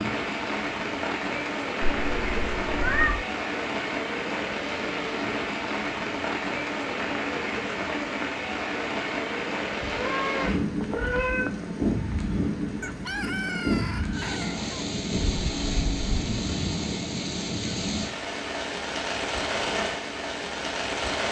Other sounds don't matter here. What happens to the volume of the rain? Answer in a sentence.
The loudness of the rain stays about the same.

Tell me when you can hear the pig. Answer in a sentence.
The pig can't be heard in this clip.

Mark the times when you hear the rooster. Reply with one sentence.
You can hear the rooster from 12.8 to 14.8 s.